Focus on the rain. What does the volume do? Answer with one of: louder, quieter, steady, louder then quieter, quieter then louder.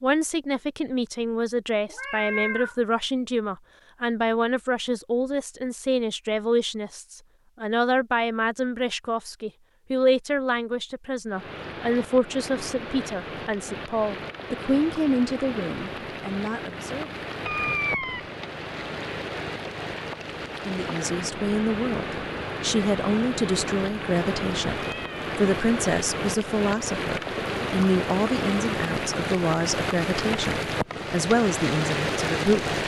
louder.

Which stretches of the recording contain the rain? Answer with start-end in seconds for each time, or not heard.
11.3-32.8.